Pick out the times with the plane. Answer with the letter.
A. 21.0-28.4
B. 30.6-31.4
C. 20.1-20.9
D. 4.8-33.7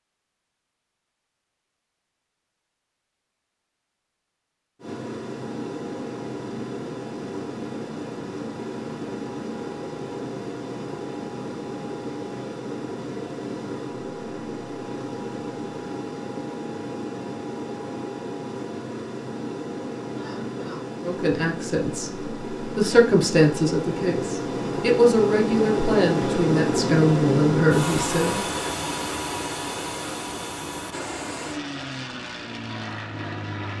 D.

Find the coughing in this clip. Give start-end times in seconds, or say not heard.
20.1-20.9.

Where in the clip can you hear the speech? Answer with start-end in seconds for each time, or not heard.
21.0-28.4.